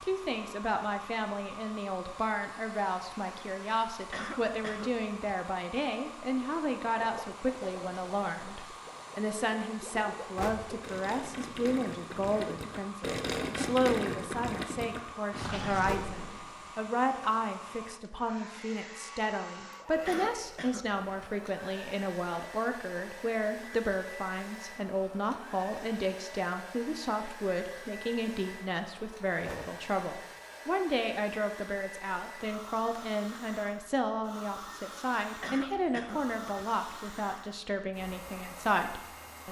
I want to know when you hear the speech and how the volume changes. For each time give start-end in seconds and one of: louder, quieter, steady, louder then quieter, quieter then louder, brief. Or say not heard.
0.0-39.4 steady.